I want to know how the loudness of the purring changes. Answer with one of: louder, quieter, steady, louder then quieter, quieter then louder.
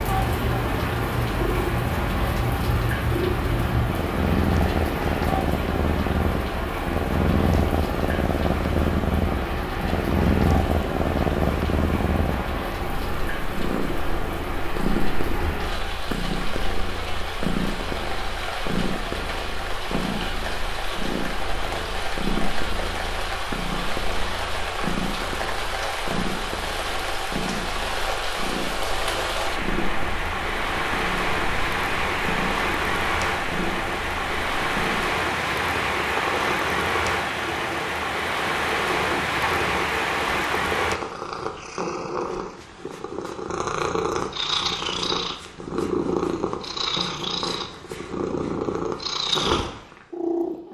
quieter then louder.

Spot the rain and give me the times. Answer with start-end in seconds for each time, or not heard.
0.0-41.0.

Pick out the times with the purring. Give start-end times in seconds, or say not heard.
0.0-50.7.